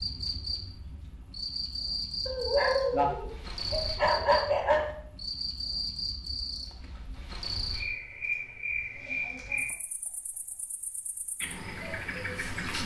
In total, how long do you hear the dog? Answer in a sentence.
You can hear the dog for 3 seconds altogether.